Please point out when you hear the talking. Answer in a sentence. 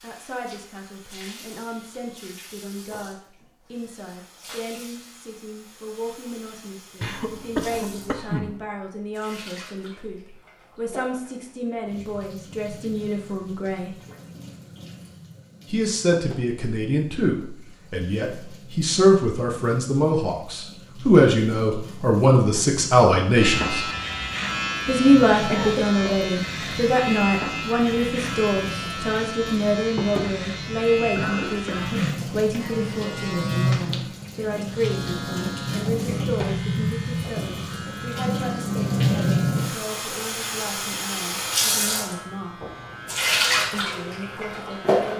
The talking can be heard from 0.0 to 13.9 s, from 15.7 to 23.9 s, from 24.9 to 42.6 s and from 43.7 to 45.1 s.